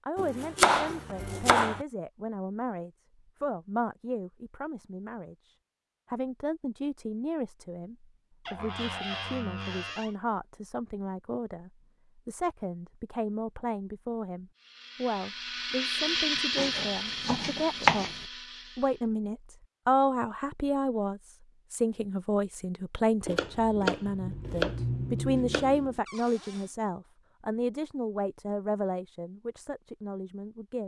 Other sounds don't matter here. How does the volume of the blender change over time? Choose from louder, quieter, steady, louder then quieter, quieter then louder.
louder then quieter.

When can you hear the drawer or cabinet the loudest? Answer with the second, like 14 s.
9 s.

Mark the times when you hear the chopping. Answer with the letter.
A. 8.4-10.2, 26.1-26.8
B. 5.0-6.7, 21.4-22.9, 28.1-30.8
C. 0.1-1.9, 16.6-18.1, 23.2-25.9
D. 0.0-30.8
C.